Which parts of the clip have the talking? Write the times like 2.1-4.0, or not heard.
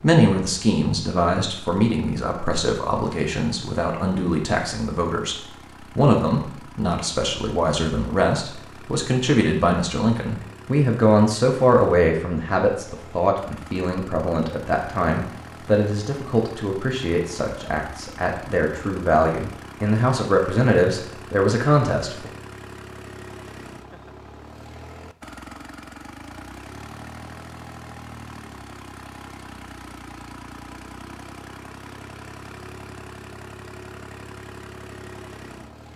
0.0-22.3.